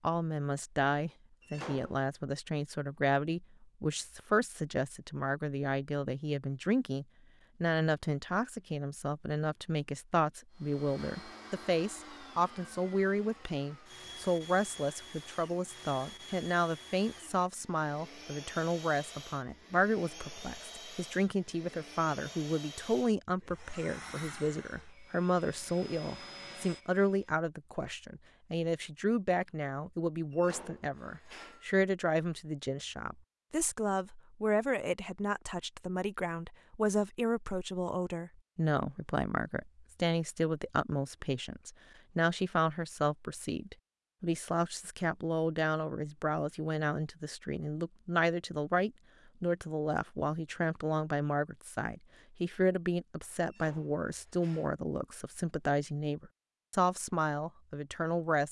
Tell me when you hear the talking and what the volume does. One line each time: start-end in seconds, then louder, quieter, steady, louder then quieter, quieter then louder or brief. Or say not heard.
0.0-58.4 steady.